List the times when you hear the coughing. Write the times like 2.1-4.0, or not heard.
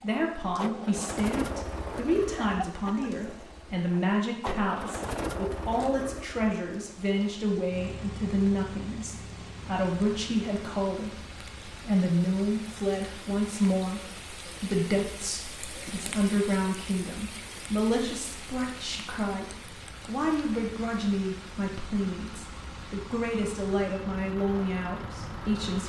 2.4-3.1.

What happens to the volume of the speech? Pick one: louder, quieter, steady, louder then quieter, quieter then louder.
steady.